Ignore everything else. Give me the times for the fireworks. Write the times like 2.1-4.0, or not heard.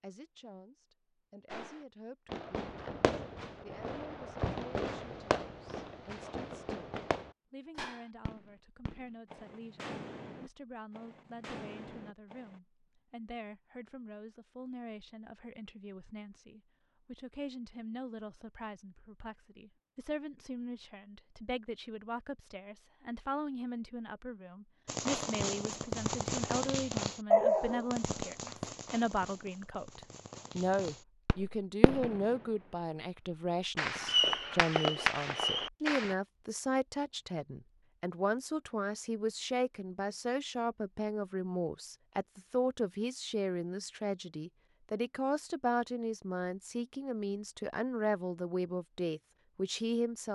1.5-12.6, 24.9-32.4, 33.8-36.1.